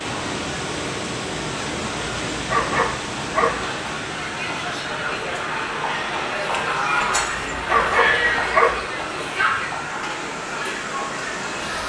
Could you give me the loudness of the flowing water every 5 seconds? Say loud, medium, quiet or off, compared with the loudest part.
loud, medium, loud.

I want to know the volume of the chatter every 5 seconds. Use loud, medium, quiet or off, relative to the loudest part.
medium, loud, medium.